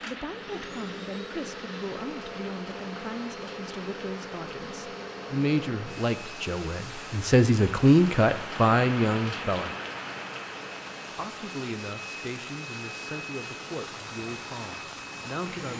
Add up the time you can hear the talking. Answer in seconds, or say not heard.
14 s.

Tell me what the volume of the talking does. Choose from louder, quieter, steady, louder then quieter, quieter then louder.
louder then quieter.